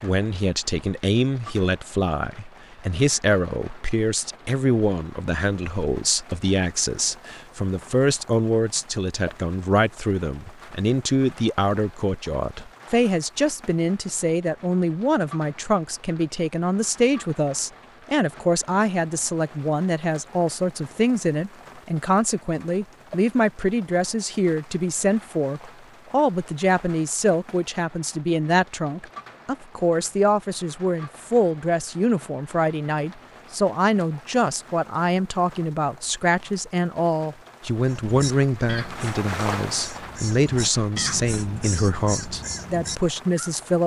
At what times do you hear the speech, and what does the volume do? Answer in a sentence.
The speech can be heard from 0.0 to 43.8 s, at a steady volume.